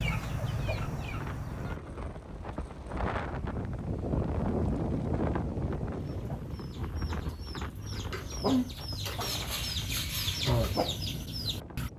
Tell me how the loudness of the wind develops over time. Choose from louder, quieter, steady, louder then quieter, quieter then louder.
louder then quieter.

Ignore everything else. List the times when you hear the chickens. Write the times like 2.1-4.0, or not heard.
0.0-1.8, 6.0-11.9.